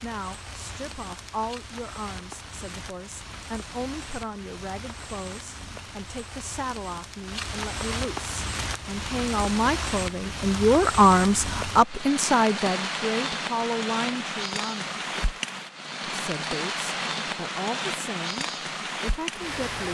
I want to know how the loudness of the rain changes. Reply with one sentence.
The loudness of the rain goes up.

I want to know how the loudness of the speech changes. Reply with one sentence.
The loudness of the speech goes up, then down.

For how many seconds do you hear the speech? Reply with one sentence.
The speech can be heard for 19 seconds in total.